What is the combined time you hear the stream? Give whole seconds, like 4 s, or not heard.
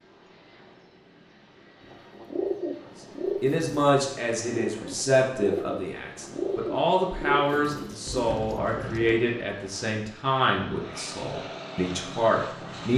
not heard.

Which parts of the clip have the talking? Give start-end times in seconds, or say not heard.
3.4-12.9.